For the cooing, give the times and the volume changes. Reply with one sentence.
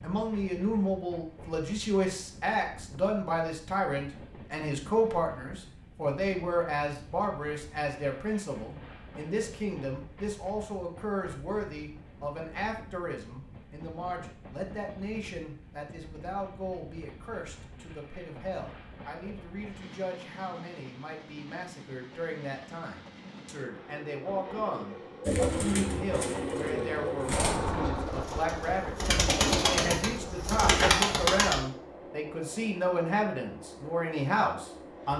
You can hear the cooing from 25.2 to 31.6 s, getting quieter then louder.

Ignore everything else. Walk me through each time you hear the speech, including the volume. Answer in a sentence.
You can hear the speech from 0.0 to 35.1 s, getting quieter then louder.